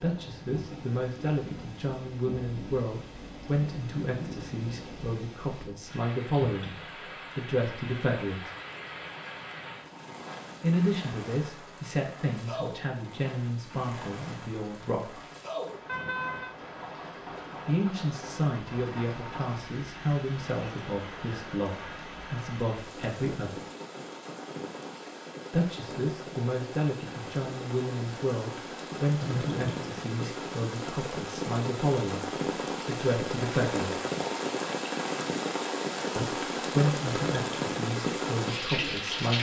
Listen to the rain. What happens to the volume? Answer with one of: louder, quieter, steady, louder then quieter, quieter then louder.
louder.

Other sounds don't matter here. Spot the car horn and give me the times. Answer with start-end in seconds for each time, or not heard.
15.8-16.6, 29.2-30.0.